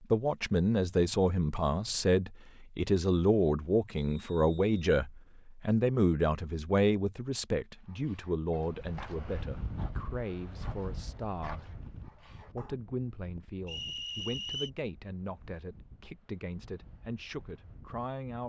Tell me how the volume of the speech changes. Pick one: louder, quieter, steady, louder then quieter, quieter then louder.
quieter.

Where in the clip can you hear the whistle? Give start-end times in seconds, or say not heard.
4.0-5.3, 13.7-14.7.